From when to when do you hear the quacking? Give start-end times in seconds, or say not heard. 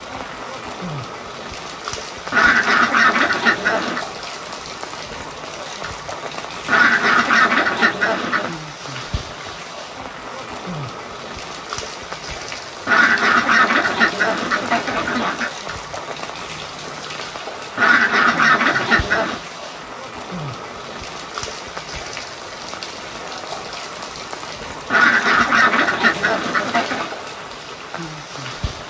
2.3-4.0, 6.7-8.6, 12.8-15.5, 17.8-19.4, 24.9-27.1.